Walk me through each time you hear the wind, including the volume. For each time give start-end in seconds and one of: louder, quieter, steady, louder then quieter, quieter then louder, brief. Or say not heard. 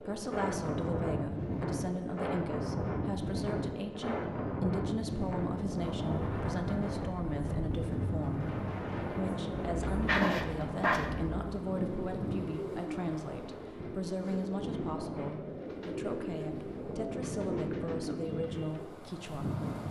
0.0-19.8 quieter.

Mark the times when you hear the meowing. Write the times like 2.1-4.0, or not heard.
not heard.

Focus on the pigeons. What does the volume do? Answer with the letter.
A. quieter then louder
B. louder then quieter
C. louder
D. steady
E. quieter
E.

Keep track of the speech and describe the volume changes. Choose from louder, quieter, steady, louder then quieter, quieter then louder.
steady.